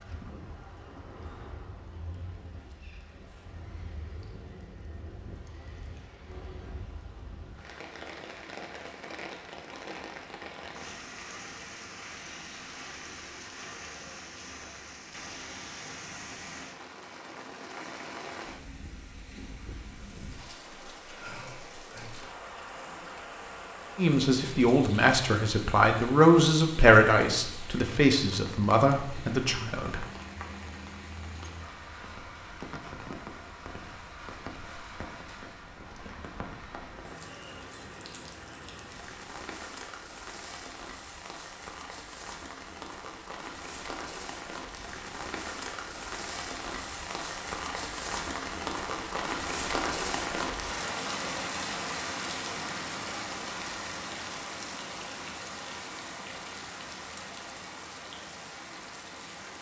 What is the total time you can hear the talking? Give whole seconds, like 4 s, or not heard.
6 s.